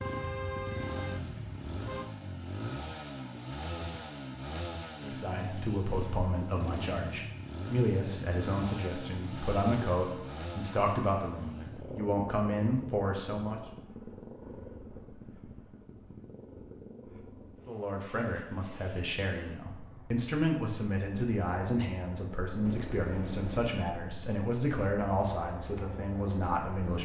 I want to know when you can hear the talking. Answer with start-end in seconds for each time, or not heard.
5.0-13.6, 17.6-27.0.